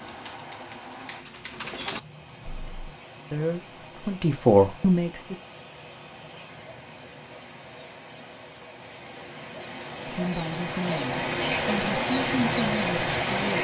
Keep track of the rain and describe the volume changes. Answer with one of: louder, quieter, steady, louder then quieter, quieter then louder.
louder.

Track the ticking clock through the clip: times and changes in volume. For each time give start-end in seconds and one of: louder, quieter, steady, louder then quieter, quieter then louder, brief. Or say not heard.
not heard.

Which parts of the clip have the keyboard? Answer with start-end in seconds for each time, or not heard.
0.0-2.9.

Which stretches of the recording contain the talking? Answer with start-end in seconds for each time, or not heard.
3.3-5.3, 10.1-13.5.